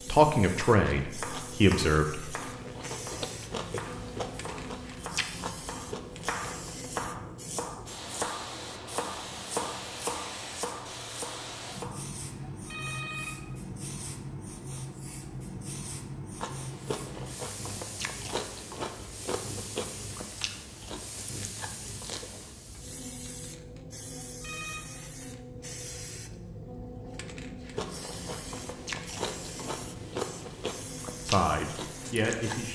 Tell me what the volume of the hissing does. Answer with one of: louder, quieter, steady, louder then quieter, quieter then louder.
steady.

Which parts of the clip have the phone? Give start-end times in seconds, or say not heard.
12.2-13.3, 24.0-24.8.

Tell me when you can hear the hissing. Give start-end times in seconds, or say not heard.
0.0-32.7.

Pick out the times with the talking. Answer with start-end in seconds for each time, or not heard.
0.1-2.5, 31.2-32.7.